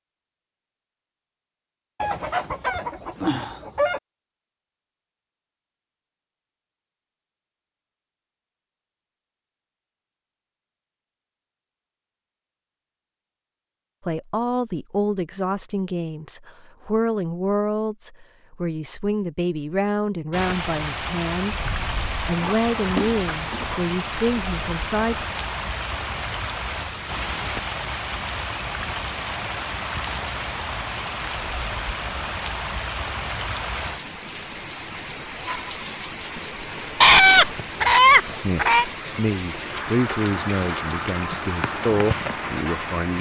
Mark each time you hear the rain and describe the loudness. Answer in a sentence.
You can hear the rain from 20.3 to 43.1 s, at a steady volume.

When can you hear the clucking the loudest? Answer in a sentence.
The volume of the clucking peaks at 37 seconds.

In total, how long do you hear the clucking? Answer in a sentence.
The clucking can be heard for 6 seconds in total.